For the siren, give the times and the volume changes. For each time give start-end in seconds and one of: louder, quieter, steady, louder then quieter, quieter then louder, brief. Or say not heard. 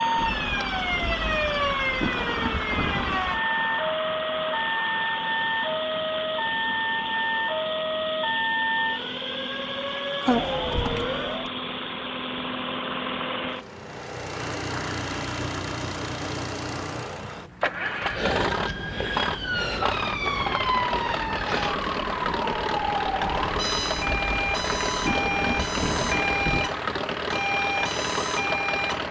0.0-11.5 steady
18.0-29.0 steady.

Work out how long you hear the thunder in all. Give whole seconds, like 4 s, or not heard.
7 s.